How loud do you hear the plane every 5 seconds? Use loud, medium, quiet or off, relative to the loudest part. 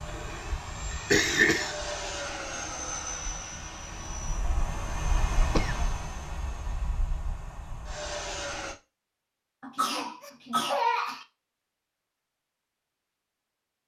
loud, loud, off.